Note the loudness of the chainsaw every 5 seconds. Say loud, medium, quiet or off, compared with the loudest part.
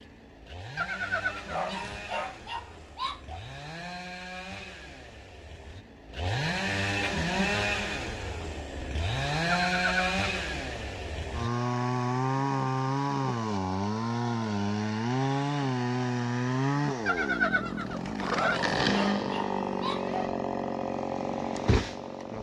quiet, loud, loud, loud, loud.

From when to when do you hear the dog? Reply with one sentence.
You can hear the dog from 1.4 to 3.4 s and from 18.3 to 20.3 s.